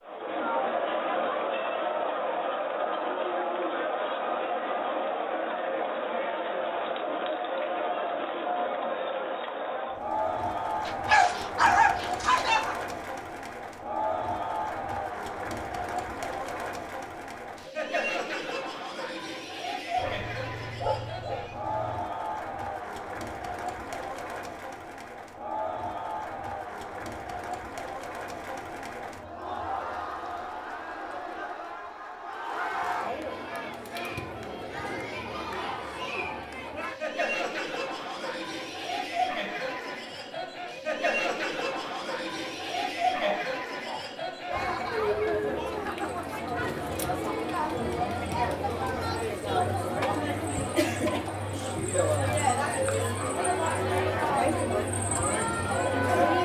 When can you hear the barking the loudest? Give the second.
12 s.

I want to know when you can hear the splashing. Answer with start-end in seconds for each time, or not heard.
not heard.